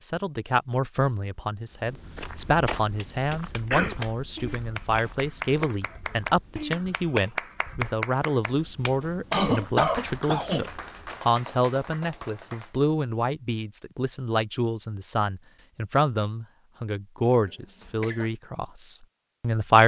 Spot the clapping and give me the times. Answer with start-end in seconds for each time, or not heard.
3.0-12.8.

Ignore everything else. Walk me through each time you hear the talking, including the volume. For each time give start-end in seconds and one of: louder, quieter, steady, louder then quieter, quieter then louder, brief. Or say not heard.
0.0-19.8 steady.